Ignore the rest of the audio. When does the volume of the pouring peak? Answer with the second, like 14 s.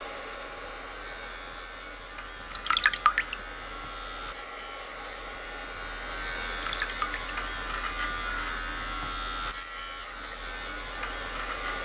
3 s.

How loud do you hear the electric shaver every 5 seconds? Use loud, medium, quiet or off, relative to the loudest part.
medium, loud, loud.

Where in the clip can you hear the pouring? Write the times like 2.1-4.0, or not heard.
2.4-3.4, 6.5-7.2.